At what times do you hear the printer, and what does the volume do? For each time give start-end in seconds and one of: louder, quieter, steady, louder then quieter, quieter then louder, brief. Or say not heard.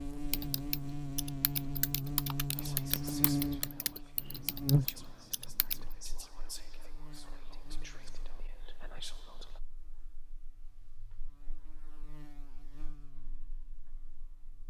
not heard.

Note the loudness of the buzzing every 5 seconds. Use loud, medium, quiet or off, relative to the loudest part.
loud, quiet, quiet.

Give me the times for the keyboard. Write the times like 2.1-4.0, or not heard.
0.3-6.0.